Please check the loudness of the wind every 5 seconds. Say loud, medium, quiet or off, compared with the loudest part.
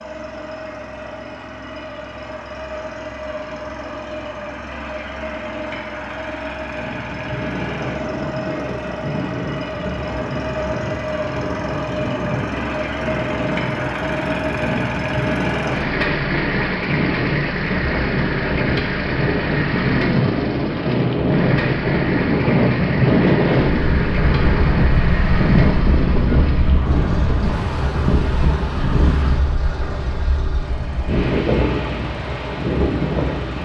off, medium, medium, medium, loud, loud, medium.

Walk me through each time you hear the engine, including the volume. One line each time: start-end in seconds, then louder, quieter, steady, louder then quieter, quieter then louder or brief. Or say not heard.
0.0-33.6 louder then quieter.